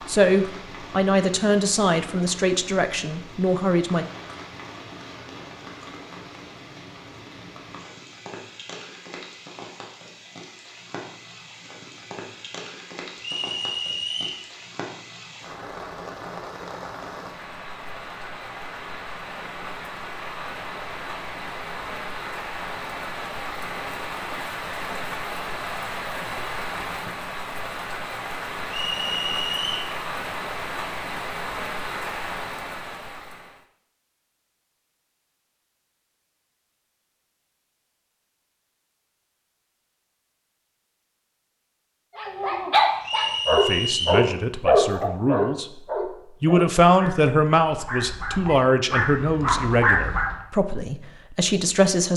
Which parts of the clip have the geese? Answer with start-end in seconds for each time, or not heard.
not heard.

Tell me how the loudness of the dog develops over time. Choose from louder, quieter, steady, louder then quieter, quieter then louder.
quieter then louder.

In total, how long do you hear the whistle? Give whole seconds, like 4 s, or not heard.
4 s.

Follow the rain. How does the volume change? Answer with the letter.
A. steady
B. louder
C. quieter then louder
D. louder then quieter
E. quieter
B.